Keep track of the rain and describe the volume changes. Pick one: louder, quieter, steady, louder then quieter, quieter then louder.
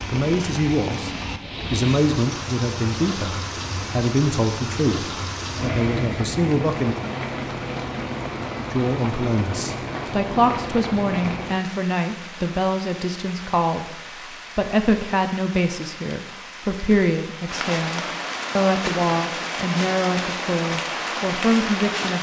quieter then louder.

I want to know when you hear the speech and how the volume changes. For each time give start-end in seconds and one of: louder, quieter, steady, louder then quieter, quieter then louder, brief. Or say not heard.
0.1-1.1 brief
1.7-7.0 steady
8.7-22.1 steady.